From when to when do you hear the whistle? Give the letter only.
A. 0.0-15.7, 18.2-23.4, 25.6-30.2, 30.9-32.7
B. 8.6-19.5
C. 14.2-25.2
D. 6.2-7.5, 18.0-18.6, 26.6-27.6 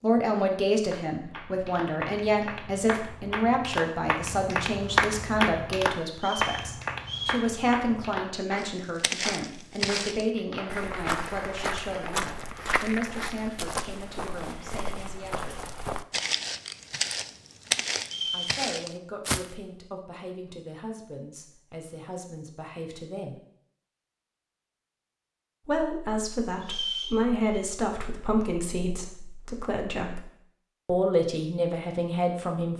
D.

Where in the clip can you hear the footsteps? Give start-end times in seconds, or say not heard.
8.6-19.5.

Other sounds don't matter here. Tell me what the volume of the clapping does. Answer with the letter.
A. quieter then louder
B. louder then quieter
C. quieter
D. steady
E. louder
B.